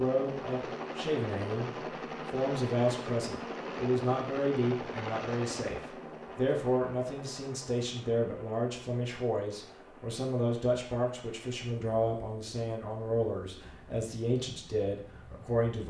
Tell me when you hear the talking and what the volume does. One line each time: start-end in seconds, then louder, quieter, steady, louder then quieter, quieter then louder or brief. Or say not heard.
0.0-15.8 steady.